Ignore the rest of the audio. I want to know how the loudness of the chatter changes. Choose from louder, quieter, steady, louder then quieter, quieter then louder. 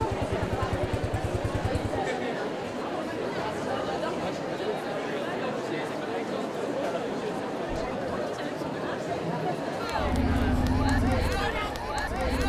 steady.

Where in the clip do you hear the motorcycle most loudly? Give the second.
11 s.